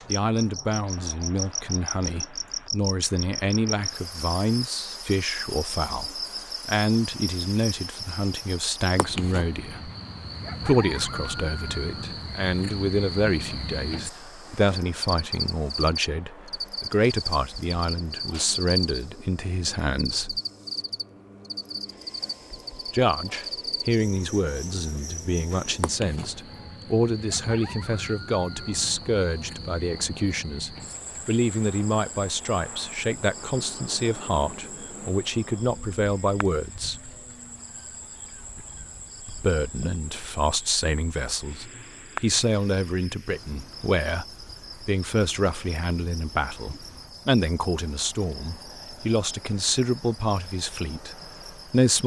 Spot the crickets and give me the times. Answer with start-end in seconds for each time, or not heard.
0.0-52.0.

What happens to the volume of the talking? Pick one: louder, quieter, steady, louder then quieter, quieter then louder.
steady.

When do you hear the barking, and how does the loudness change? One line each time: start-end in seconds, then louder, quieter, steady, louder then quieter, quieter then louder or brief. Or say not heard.
not heard.